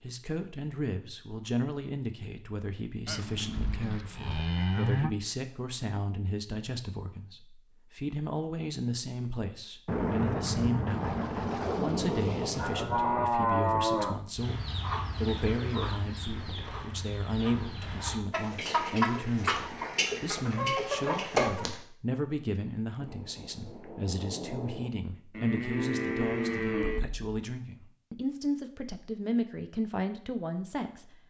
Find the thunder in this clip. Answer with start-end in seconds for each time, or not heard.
9.8-13.3, 22.9-24.9.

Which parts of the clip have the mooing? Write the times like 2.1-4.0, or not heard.
3.0-5.1, 12.6-14.2, 25.3-27.1.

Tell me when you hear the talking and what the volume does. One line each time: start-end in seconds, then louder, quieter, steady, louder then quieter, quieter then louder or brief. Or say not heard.
0.0-31.2 steady.